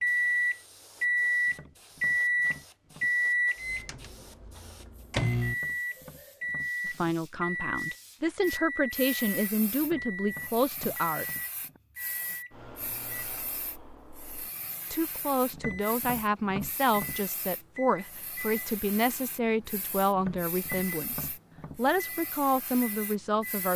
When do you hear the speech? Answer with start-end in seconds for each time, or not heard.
6.8-11.2, 14.9-23.7.